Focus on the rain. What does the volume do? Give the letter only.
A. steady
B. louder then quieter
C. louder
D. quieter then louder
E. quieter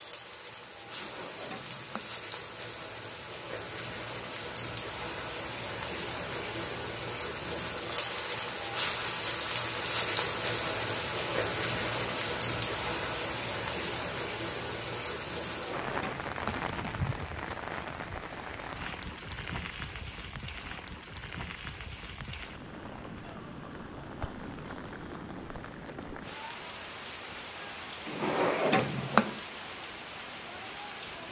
B.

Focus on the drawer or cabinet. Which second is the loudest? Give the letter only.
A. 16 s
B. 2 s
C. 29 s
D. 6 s
C.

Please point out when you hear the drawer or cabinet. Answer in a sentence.
The drawer or cabinet can be heard from 0.8 to 2.1 s, from 15.3 to 16.7 s and from 28.1 to 29.4 s.